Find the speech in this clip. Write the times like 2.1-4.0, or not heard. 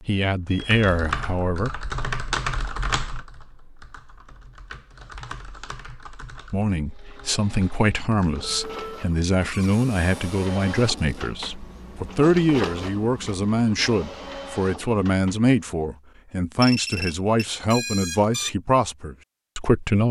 0.0-1.7, 6.5-20.0.